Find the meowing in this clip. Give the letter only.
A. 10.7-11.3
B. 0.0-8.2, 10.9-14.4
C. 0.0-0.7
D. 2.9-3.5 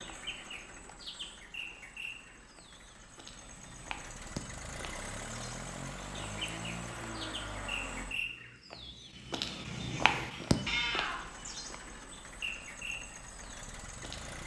A.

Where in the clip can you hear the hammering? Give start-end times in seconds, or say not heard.
not heard.